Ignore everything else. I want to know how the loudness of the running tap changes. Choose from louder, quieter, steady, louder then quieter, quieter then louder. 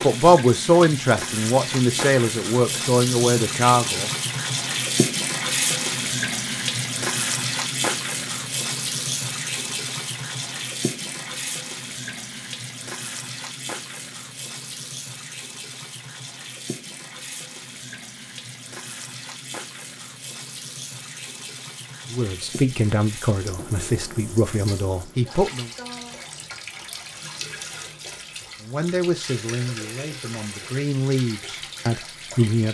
quieter.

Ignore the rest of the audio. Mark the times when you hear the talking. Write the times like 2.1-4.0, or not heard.
0.0-4.1, 22.1-25.7, 28.6-32.6.